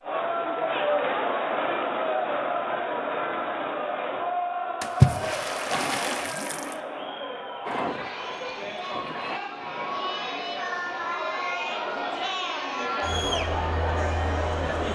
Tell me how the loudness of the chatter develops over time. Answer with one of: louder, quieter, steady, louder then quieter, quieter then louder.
quieter then louder.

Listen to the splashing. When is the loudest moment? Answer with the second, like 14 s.
5 s.